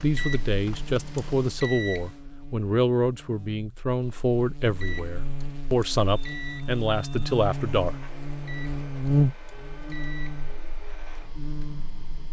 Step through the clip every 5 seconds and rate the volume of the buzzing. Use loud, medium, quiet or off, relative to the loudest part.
quiet, loud, medium.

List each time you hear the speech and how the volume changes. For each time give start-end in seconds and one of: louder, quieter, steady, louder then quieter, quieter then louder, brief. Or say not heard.
0.0-8.0 steady.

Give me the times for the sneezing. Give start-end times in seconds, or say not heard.
not heard.